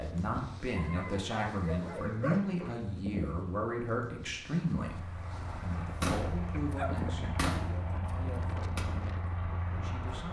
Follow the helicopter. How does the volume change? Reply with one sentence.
The volume of the helicopter stays about the same.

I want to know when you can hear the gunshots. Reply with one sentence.
You can hear the gunshots from 6.0 to 8.1 s.